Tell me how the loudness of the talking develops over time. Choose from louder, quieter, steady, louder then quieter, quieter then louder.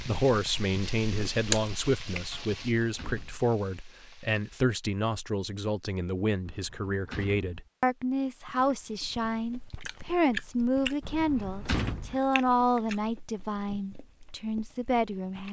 steady.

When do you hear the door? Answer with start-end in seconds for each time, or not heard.
2.4-3.5, 6.5-7.5, 11.0-12.2.